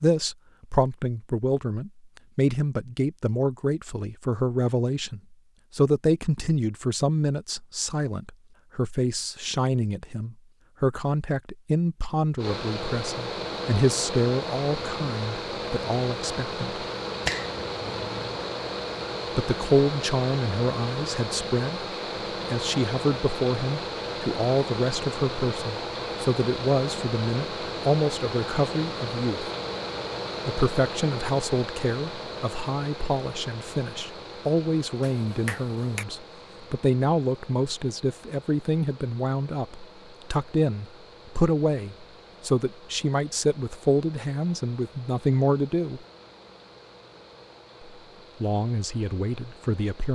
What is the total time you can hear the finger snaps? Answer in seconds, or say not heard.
2 s.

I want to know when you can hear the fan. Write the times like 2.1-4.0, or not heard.
12.3-50.1.